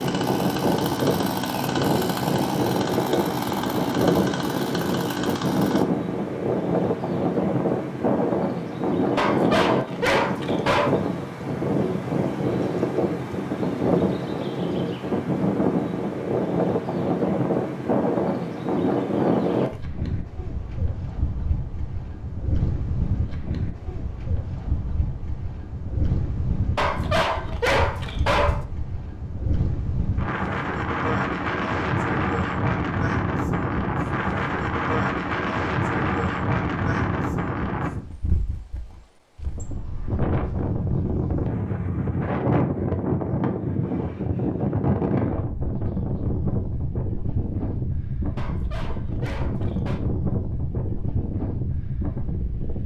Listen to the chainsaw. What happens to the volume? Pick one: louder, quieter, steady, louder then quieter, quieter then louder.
steady.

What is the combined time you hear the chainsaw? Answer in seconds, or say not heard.
6 s.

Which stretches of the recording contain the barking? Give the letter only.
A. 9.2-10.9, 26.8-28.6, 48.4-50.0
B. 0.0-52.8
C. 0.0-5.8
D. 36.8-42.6
A.